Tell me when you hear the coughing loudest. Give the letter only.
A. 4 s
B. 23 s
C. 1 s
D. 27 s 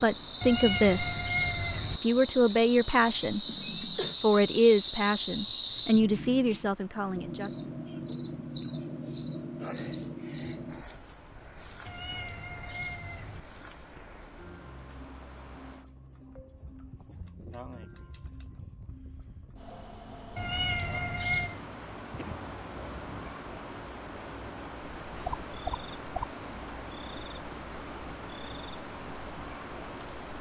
A.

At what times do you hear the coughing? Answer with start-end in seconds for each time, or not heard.
3.5-4.2, 22.1-23.4.